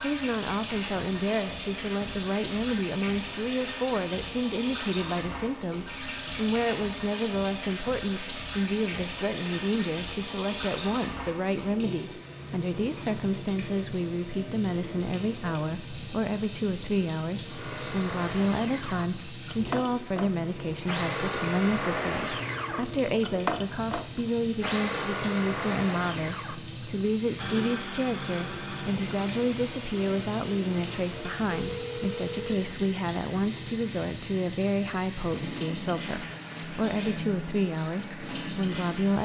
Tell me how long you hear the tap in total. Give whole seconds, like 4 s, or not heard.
39 s.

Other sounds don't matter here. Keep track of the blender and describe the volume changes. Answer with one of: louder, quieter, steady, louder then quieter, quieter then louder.
quieter.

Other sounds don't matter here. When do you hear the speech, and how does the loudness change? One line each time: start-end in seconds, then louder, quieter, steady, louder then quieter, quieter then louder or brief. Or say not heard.
0.0-39.2 steady.